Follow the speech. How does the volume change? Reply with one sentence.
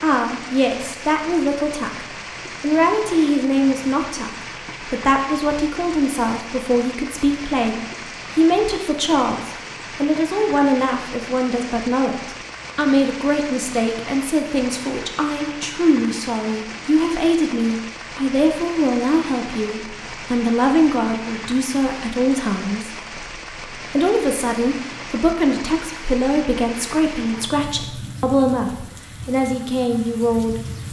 The volume of the speech stays about the same.